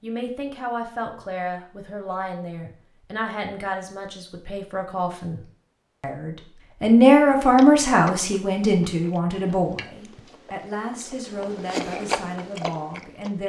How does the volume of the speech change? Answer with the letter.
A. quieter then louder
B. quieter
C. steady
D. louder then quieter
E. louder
D.